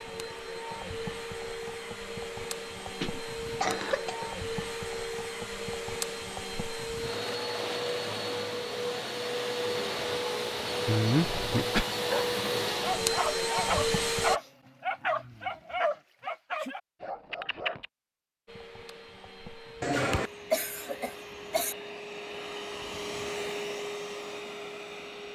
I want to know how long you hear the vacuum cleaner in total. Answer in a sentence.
You can hear the vacuum cleaner for 21 seconds altogether.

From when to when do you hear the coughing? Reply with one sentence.
You can hear the coughing from 3.0 to 4.3 s, from 10.8 to 11.8 s and from 19.8 to 21.8 s.